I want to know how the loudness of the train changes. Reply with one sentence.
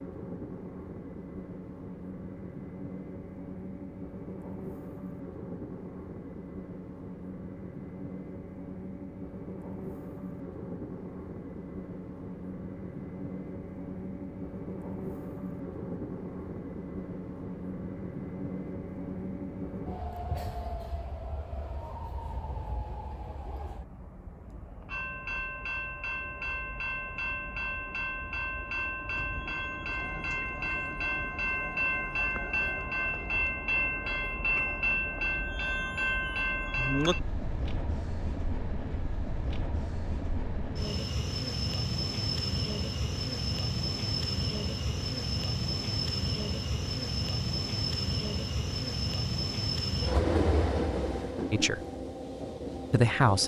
The loudness of the train goes up.